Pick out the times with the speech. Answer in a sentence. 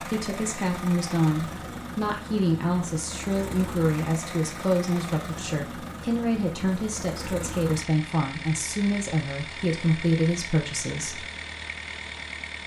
The speech can be heard from 0.0 to 11.2 s.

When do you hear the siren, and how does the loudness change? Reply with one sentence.
You can't hear the siren here.